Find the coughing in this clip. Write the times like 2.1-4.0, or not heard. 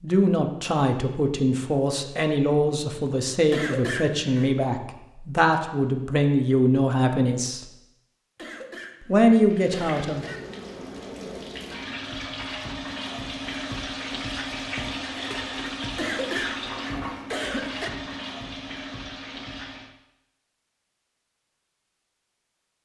3.5-4.5, 8.3-10.4, 15.9-17.9.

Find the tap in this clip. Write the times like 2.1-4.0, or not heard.
9.4-19.9.